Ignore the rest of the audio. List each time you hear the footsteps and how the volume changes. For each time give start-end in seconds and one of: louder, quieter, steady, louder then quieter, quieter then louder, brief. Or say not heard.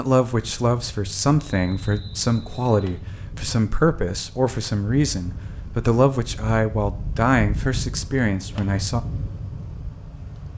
not heard.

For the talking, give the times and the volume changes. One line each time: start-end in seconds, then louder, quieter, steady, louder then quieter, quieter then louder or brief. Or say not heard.
0.0-9.0 steady.